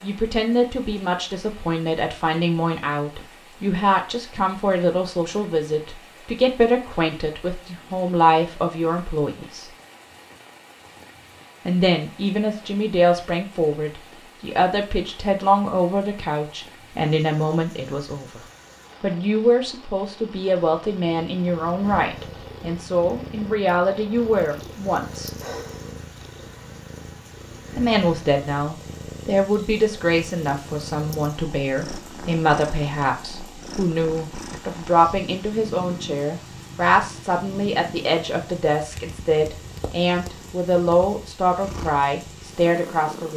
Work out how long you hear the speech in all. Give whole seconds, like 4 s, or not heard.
38 s.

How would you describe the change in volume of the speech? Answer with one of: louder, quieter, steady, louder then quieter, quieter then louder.
steady.